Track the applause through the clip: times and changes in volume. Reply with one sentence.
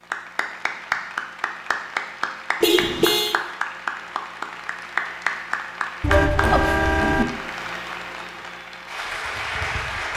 You can hear the applause from 0.1 to 10.1 s, at a steady volume.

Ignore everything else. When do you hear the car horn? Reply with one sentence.
The car horn can be heard from 2.6 to 3.4 s and from 6.0 to 7.2 s.